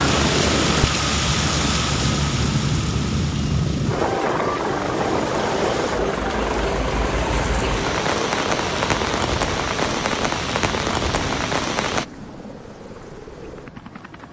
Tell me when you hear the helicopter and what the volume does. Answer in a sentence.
The helicopter can be heard from 0.0 to 14.2 s, getting quieter.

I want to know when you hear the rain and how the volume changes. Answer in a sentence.
The rain can be heard from 0.0 to 12.1 s, getting quieter then louder.